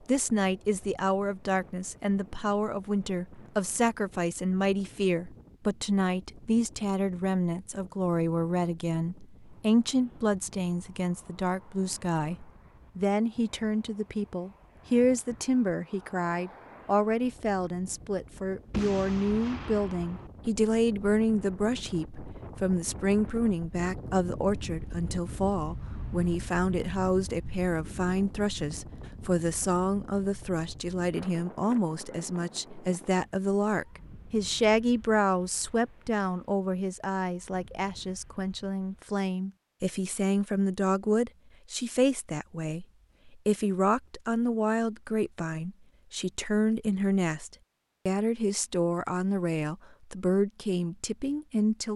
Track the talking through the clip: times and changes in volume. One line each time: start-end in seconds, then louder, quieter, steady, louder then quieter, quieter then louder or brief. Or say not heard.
0.1-51.9 steady.